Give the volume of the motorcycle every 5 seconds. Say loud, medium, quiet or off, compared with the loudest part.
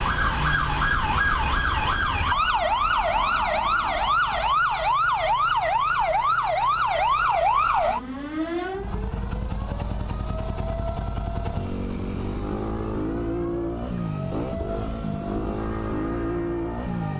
quiet, medium, loud, loud.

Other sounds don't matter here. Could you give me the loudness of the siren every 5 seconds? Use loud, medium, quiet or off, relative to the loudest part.
loud, loud, quiet, quiet.